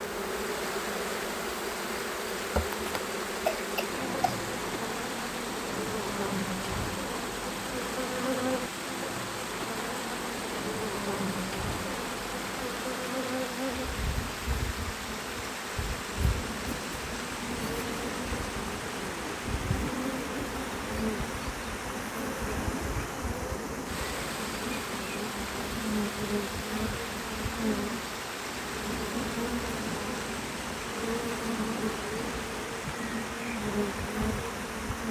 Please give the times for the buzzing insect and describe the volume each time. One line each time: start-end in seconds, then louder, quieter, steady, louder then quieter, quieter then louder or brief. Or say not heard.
0.0-35.0 steady.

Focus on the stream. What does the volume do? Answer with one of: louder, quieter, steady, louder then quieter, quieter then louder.
steady.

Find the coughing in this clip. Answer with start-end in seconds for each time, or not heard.
3.5-4.4.